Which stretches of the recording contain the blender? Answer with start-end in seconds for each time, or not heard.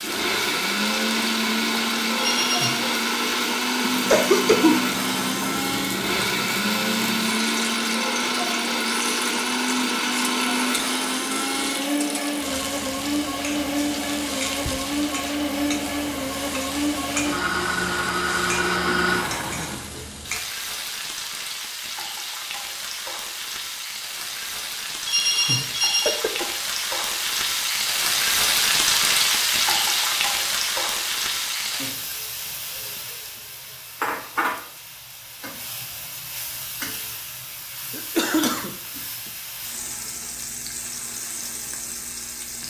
0.0-20.1.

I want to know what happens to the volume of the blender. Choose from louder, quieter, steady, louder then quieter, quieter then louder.
steady.